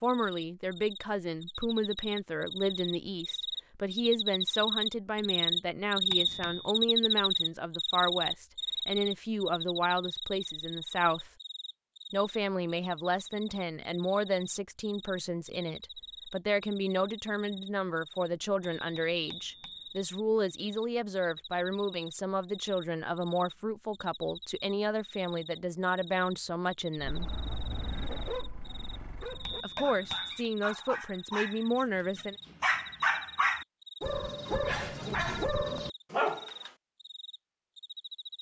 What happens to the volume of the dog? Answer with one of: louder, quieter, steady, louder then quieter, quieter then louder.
louder.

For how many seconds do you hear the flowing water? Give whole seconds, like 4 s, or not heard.
not heard.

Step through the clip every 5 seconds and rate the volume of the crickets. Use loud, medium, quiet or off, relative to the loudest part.
medium, loud, quiet, quiet, quiet, quiet, quiet, quiet.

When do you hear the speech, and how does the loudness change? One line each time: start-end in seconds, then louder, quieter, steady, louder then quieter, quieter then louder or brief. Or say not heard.
0.0-11.3 steady
12.1-27.4 steady
29.6-32.4 brief.